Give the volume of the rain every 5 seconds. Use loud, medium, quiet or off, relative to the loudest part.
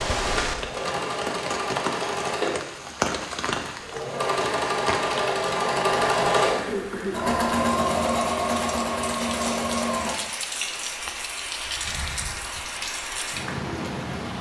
loud, medium, loud.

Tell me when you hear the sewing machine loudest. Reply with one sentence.
The loudest moment of the sewing machine is at 6 seconds.